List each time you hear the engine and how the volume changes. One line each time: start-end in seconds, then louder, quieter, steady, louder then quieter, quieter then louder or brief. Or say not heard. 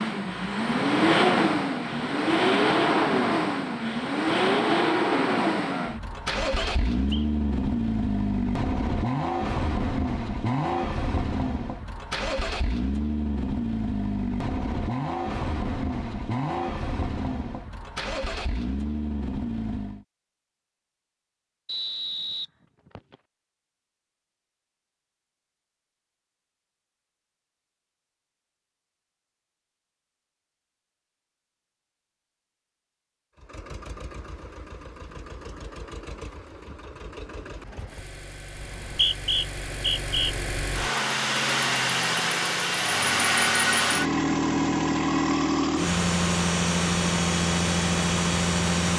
0.0-20.1 quieter
33.4-48.9 louder.